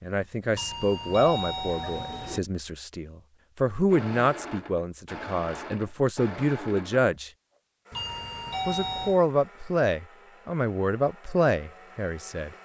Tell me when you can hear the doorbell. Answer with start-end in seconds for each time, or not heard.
0.5-2.4, 7.9-9.2.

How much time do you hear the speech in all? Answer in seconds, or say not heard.
11 s.